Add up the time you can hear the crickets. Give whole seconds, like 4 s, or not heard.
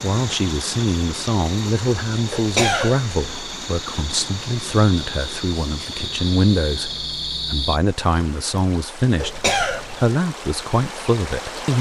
8 s.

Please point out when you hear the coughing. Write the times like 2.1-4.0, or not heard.
2.3-3.0, 9.2-10.1.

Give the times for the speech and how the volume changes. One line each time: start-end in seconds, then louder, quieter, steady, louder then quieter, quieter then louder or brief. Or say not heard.
0.0-11.7 steady.